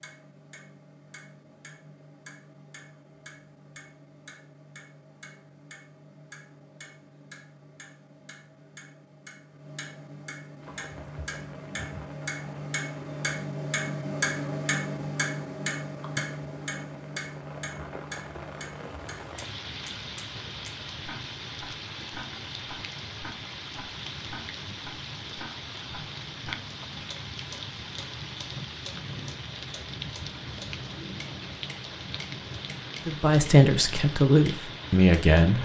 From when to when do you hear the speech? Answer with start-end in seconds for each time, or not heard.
33.0-35.6.